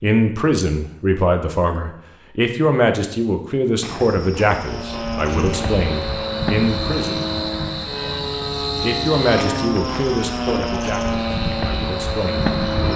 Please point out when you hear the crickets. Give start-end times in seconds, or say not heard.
3.8-12.9.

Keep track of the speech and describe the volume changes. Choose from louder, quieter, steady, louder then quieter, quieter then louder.
quieter.